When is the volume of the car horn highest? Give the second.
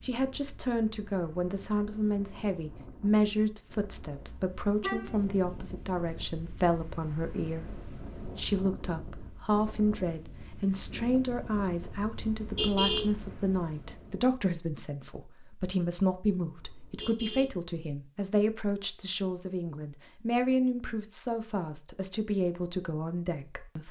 13 s.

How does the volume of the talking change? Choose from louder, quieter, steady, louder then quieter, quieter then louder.
steady.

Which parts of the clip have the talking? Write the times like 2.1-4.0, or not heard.
0.0-23.8.